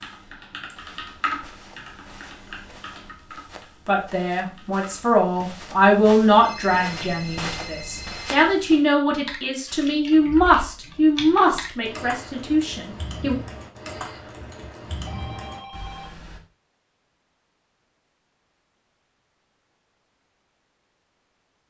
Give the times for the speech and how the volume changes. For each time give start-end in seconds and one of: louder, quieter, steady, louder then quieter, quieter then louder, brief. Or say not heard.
3.9-13.3 steady.